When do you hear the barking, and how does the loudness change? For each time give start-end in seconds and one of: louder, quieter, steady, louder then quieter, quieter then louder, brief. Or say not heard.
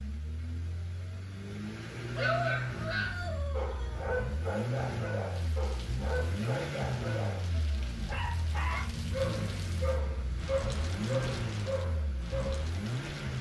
2.1-12.7 steady.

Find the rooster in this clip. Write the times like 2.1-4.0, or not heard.
2.0-4.1.